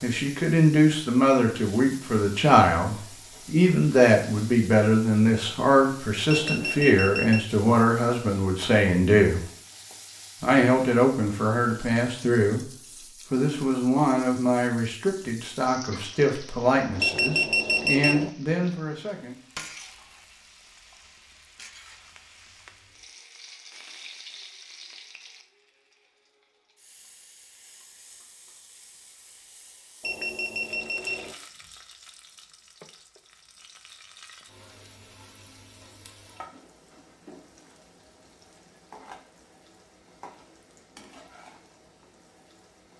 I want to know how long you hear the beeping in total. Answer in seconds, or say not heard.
4 s.